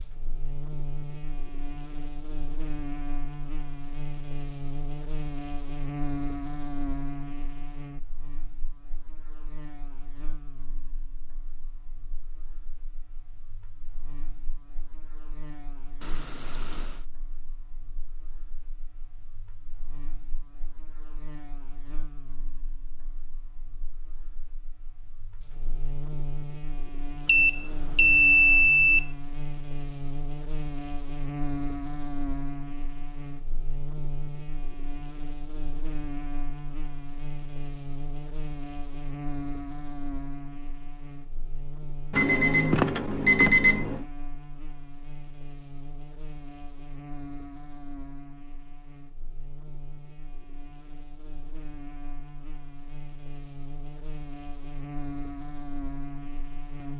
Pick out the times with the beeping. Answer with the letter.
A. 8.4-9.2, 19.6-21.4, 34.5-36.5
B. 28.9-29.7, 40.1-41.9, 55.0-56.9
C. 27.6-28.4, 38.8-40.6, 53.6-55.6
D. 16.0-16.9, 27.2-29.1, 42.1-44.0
D.